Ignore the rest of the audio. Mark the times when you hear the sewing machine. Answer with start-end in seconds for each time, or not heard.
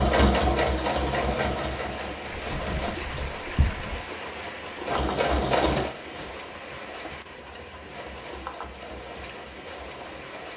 0.0-3.0, 4.8-10.5.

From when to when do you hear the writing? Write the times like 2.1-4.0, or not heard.
2.5-4.0.